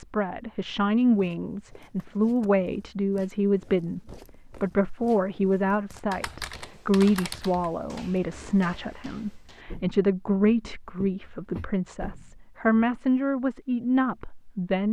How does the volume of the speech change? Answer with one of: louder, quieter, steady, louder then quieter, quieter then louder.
steady.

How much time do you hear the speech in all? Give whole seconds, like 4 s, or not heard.
15 s.